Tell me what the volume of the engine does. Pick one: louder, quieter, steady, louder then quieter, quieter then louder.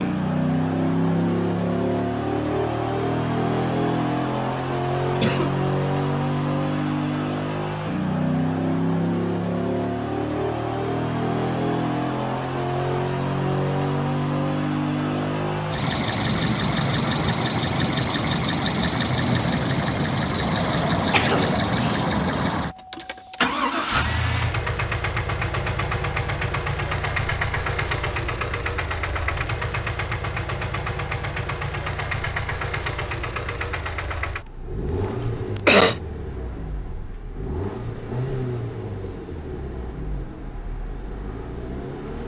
quieter.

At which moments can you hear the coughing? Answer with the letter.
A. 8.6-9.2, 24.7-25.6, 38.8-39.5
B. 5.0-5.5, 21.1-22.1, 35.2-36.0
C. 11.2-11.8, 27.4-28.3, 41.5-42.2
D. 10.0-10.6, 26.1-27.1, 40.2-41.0
B.